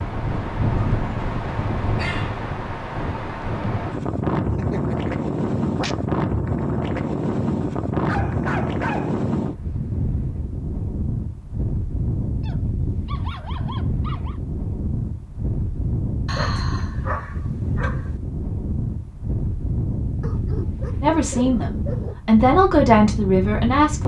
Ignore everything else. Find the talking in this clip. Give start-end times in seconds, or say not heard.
21.0-24.0.